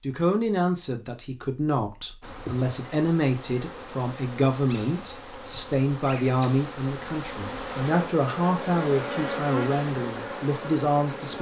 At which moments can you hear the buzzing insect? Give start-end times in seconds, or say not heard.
2.2-11.3.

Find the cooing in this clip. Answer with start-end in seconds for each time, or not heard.
not heard.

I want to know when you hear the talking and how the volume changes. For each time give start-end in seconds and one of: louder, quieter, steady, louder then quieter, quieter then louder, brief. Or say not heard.
0.0-11.3 steady.